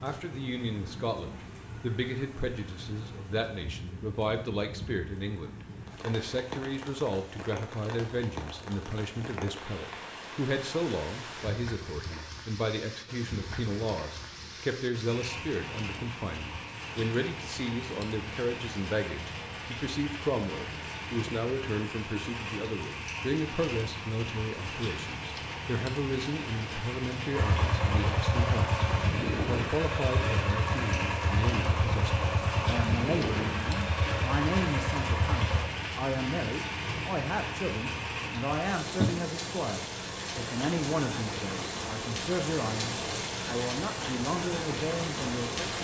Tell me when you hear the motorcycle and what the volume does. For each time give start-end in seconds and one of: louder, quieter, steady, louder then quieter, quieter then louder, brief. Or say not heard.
27.3-35.6 steady.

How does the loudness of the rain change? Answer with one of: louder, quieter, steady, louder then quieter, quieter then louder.
louder.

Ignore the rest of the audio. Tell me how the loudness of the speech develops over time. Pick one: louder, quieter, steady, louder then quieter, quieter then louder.
steady.